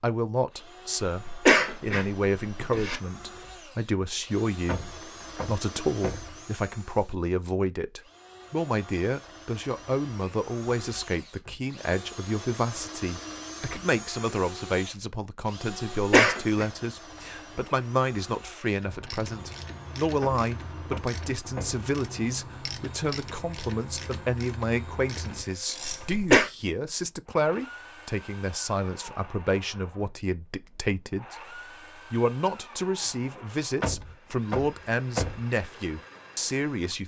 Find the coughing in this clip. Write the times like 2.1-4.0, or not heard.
1.1-3.0, 15.9-16.6, 25.9-26.4.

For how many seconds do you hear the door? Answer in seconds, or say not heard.
5 s.